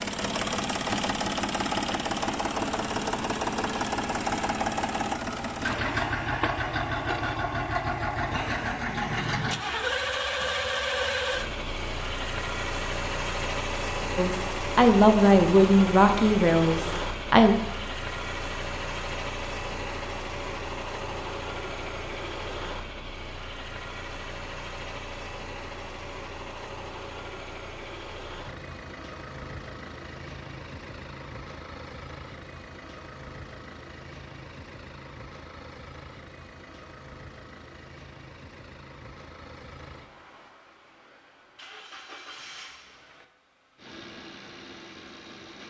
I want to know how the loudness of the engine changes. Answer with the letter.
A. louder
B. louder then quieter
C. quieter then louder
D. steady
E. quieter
E.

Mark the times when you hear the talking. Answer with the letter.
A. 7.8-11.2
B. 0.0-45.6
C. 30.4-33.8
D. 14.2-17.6
D.